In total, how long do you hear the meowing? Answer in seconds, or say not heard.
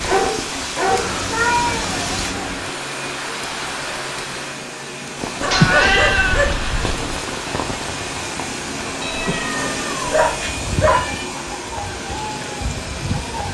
6 s.